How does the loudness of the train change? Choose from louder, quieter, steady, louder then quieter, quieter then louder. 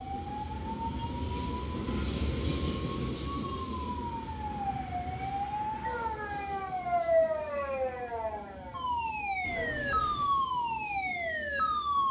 quieter.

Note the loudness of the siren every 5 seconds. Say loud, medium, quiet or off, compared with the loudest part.
medium, loud, loud.